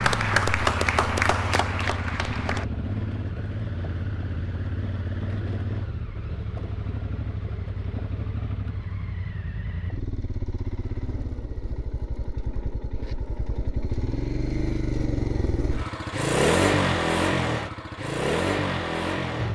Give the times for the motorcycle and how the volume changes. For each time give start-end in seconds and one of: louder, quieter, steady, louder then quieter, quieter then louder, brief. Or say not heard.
0.0-19.5 louder.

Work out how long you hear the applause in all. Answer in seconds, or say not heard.
3 s.